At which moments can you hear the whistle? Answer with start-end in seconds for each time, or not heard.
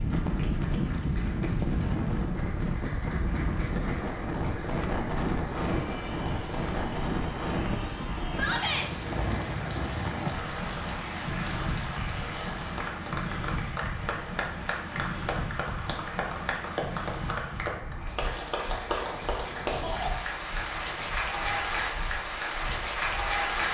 not heard.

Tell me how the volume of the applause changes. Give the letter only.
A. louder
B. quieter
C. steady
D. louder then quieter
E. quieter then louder
A.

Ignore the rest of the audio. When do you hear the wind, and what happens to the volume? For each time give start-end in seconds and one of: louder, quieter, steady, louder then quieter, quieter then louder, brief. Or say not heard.
0.0-23.6 quieter.